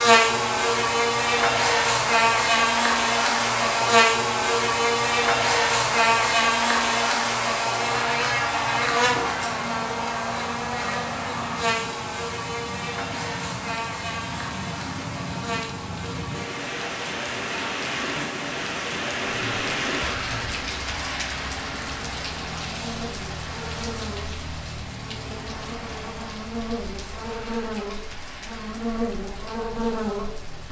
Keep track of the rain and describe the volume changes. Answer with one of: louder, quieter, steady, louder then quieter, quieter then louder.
louder then quieter.